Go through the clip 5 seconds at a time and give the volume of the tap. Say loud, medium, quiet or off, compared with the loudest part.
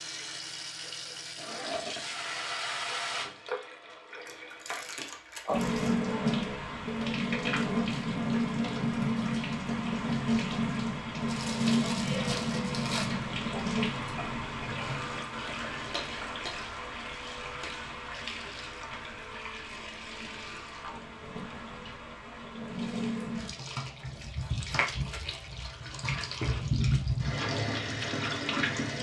medium, loud, loud, medium, medium, loud.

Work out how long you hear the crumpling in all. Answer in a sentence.
The crumpling can be heard for 4 seconds in total.